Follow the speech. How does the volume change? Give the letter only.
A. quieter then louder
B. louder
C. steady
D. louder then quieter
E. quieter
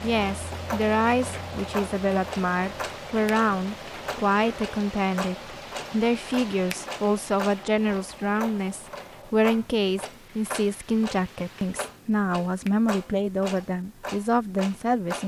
C.